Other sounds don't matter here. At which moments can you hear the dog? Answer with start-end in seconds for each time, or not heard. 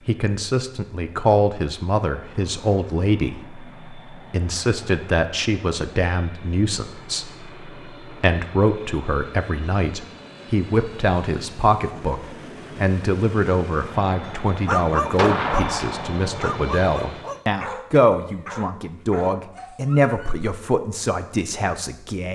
14.2-15.7, 16.4-20.4.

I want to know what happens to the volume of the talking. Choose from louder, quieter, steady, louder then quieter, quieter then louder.
steady.